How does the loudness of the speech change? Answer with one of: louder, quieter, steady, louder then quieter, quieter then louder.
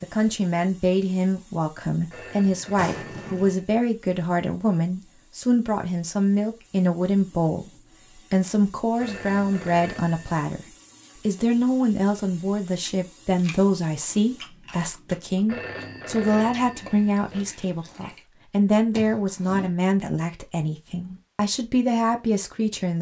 steady.